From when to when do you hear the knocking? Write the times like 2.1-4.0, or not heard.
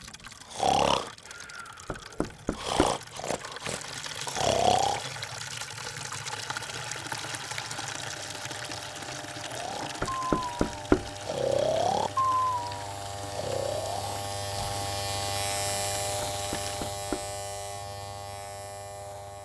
1.9-2.9, 10.0-11.1, 16.2-17.3.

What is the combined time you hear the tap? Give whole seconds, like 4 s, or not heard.
17 s.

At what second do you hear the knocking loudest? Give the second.
11 s.